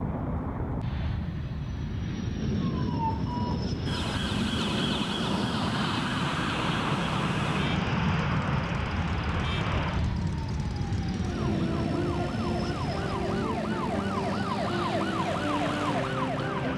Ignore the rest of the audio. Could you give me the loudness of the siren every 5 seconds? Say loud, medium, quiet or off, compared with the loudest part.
medium, medium, loud, loud.